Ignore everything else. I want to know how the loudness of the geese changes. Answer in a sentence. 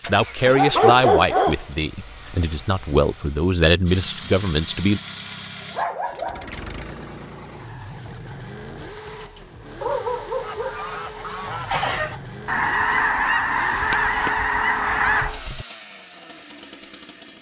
The volume of the geese goes up.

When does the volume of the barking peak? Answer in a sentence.
The volume of the barking peaks at 1 second.